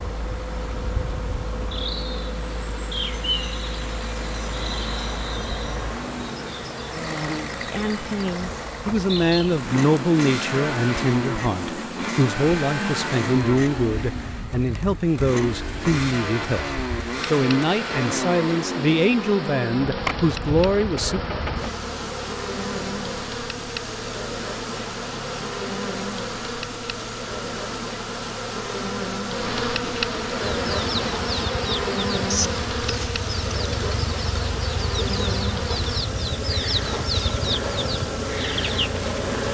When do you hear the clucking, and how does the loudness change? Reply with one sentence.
You can hear the clucking from 30.5 to 38.9 s, at a steady volume.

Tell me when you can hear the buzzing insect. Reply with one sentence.
You can hear the buzzing insect from 0.0 to 39.4 s.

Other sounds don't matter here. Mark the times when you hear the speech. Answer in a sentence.
The speech can be heard from 7.7 to 21.2 s.